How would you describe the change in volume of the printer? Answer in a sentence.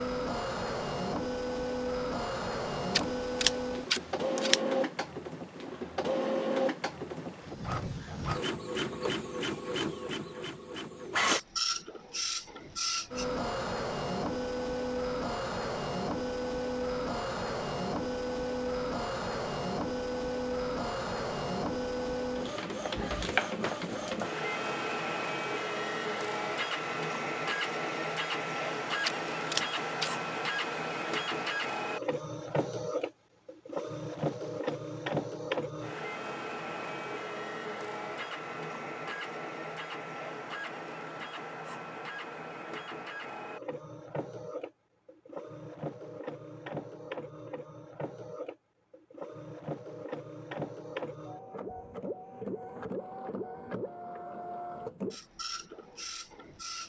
The volume of the printer goes down.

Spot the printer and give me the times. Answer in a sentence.
You can hear the printer from 0.0 to 56.8 s.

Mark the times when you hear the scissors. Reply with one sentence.
The scissors can be heard from 2.9 to 4.6 s and from 29.1 to 30.1 s.